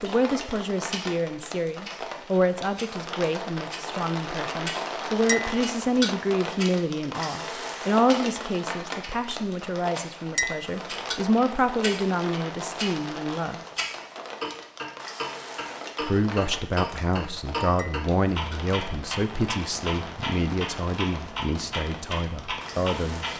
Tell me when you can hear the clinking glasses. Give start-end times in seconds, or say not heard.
5.2-6.2, 10.3-11.2, 17.8-18.8.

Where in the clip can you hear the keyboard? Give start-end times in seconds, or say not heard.
not heard.